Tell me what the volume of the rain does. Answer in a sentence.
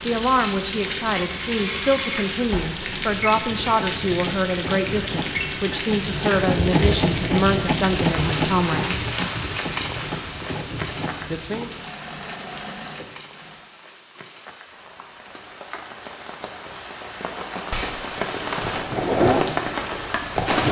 The volume of the rain goes down, then up.